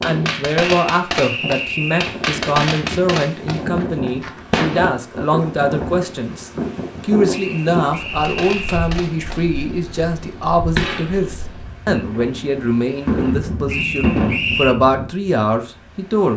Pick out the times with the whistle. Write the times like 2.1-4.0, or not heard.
0.8-2.2, 7.3-8.9, 13.7-14.8.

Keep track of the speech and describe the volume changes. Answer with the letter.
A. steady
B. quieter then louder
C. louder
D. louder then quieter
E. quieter
A.